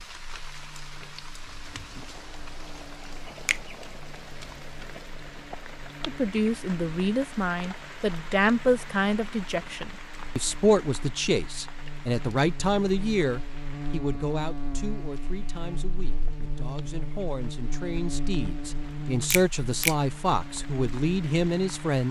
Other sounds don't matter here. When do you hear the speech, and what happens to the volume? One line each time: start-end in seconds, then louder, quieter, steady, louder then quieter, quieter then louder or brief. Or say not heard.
6.0-22.0 quieter then louder.